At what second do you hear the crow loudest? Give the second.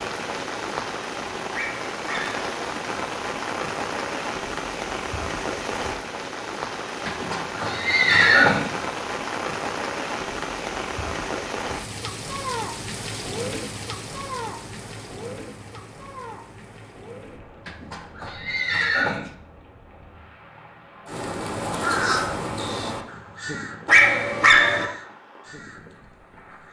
22 s.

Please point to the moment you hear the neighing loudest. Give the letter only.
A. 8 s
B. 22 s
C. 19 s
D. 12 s
A.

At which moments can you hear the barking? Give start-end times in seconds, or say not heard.
1.5-2.4, 23.9-24.9.